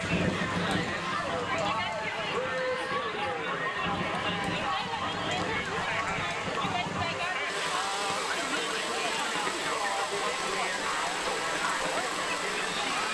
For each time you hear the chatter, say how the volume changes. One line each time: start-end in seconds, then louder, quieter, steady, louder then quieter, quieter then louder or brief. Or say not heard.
0.0-13.0 steady.